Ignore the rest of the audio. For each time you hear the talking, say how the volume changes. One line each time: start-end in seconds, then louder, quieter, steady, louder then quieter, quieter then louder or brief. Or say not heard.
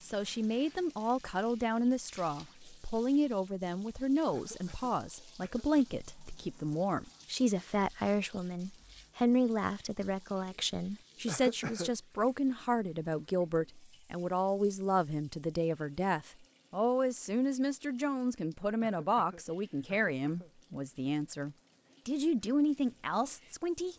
0.0-23.9 steady.